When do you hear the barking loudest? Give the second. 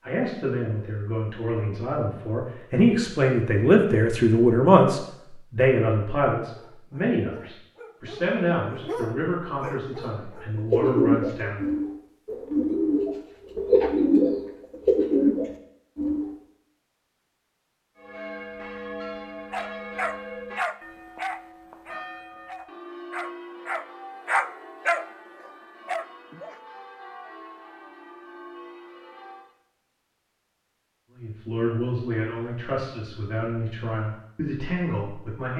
24 s.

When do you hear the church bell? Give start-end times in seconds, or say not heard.
17.9-29.6.